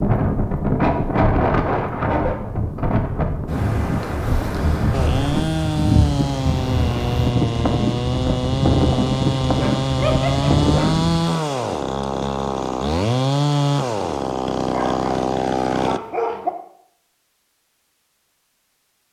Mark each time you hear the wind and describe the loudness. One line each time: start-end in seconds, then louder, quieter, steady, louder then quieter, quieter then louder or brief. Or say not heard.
0.0-11.2 steady.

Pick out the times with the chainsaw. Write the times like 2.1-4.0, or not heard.
4.9-16.0.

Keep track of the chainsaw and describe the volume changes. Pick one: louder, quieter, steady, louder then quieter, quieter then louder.
steady.